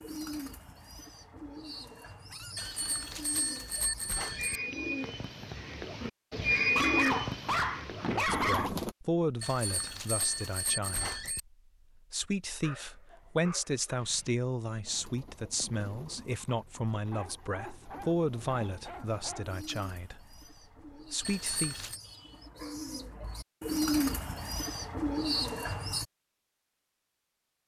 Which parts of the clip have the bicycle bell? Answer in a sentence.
You can hear the bicycle bell from 2.5 to 4.6 s, from 9.4 to 11.4 s and from 21.2 to 22.0 s.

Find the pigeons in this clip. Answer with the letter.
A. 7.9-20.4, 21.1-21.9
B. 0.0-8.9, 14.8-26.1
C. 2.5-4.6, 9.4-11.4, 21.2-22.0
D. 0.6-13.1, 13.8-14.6
B.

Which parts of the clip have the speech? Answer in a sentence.
You can hear the speech from 7.9 to 20.4 s and from 21.1 to 21.9 s.